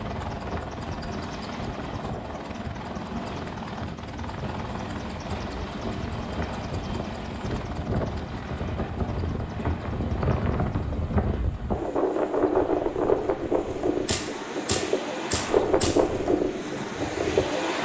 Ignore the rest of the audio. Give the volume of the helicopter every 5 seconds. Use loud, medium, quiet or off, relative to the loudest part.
loud, loud, medium, loud.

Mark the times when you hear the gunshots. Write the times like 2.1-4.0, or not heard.
14.1-16.0.